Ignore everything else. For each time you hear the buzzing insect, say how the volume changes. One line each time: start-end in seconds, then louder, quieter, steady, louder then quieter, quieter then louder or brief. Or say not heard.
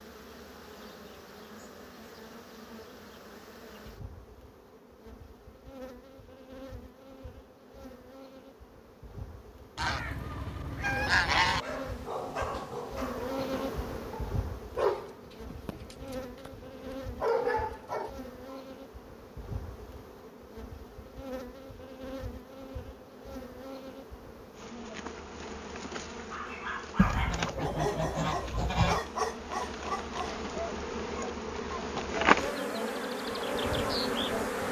0.0-34.6 louder.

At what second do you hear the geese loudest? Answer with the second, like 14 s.
11 s.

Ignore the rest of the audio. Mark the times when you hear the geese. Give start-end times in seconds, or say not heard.
9.8-11.7, 26.9-29.0.